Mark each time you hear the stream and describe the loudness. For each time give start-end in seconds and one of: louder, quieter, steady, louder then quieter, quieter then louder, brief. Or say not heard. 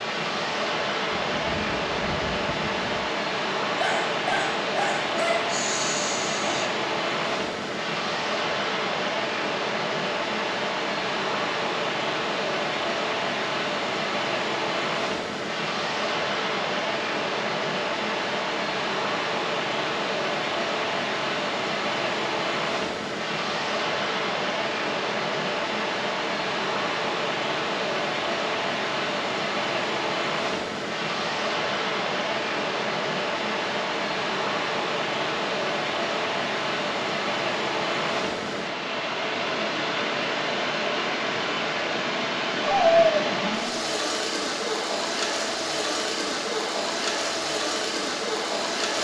0.0-48.9 steady.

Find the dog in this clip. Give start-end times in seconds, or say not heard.
3.8-6.7, 42.6-43.9.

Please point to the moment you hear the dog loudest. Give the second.
43 s.